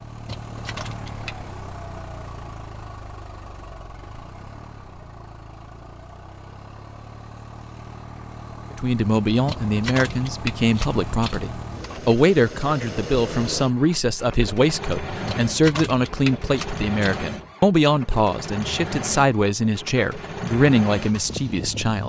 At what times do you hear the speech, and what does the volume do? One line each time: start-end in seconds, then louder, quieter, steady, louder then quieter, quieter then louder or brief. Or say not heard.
8.8-22.0 steady.